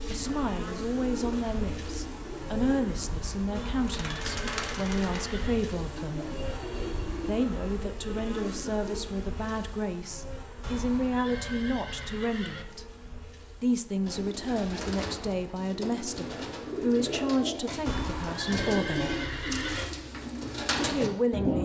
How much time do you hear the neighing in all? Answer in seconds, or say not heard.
6 s.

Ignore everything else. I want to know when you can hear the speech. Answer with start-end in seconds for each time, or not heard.
0.1-6.2, 7.2-12.9, 13.6-19.1, 20.8-21.5.